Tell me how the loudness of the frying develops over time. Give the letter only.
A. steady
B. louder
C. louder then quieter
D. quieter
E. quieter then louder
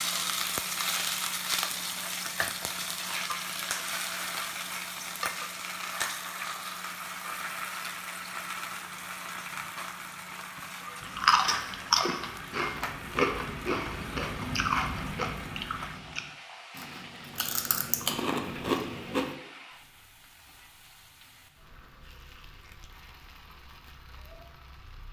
D.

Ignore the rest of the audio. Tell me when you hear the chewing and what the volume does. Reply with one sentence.
You can hear the chewing from 11.0 to 19.4 s, getting quieter then louder.